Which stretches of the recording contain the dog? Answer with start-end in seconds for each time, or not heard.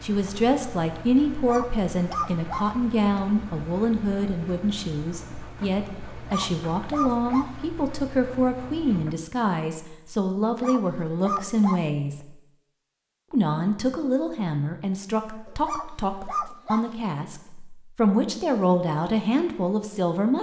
1.3-2.7, 6.1-7.5, 10.4-11.8, 15.4-16.9.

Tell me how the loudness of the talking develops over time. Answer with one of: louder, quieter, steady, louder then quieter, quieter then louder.
steady.